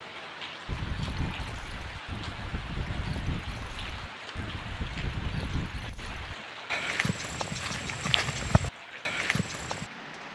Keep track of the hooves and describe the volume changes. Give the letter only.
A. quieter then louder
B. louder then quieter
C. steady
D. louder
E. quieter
D.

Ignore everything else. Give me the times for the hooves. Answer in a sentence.
You can hear the hooves from 0.7 to 9.9 s.